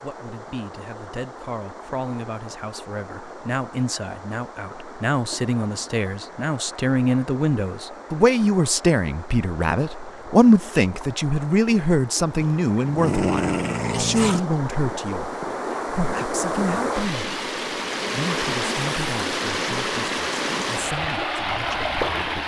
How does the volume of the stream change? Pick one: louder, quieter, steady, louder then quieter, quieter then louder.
louder.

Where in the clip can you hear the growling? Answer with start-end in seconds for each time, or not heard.
12.4-14.4.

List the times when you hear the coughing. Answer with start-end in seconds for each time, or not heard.
not heard.